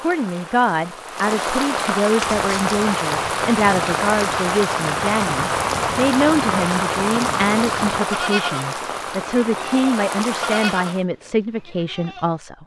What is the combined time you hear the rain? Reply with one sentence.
You can hear the rain for 11 seconds altogether.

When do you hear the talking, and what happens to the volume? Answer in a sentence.
You can hear the talking from 0.0 to 12.6 s, at a steady volume.